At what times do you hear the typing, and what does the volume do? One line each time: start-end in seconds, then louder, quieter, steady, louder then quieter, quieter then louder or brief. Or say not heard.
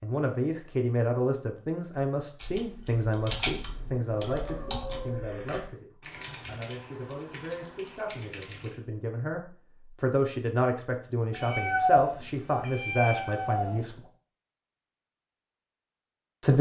2.4-8.8 quieter.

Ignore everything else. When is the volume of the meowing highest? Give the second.
12 s.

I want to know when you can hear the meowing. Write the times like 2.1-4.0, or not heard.
3.6-5.2, 11.3-13.8.